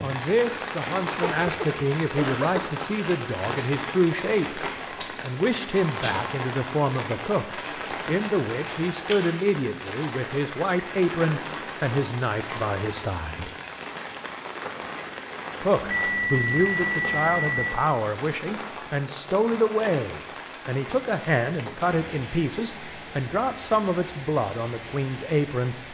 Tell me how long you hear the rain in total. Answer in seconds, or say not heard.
26 s.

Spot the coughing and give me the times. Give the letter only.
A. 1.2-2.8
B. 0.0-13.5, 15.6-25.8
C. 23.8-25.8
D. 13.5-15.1
A.